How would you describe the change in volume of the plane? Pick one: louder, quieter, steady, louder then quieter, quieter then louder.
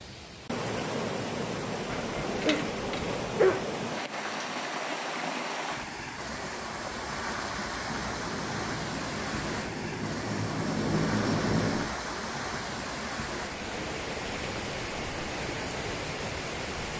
louder.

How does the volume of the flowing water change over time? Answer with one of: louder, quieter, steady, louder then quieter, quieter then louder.
steady.